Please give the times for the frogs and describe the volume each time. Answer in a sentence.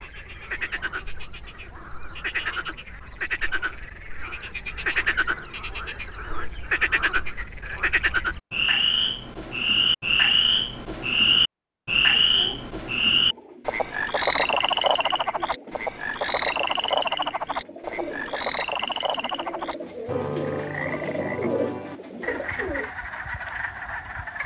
You can hear the frogs from 0.0 to 24.4 s, getting louder then quieter.